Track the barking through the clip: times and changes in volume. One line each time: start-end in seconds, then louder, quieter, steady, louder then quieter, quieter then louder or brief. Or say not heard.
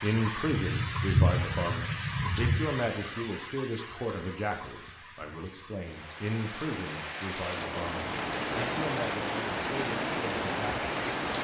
not heard.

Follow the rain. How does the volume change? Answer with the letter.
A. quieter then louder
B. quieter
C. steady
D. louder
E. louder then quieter
A.